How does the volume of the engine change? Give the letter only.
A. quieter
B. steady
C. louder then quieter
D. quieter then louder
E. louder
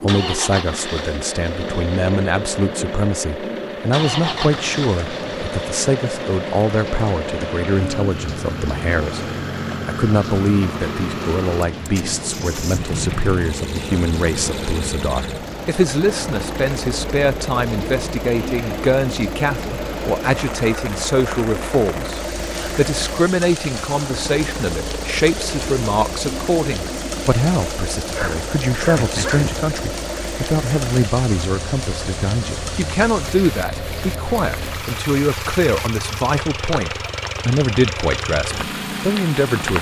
B.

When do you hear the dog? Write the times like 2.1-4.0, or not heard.
28.1-29.7.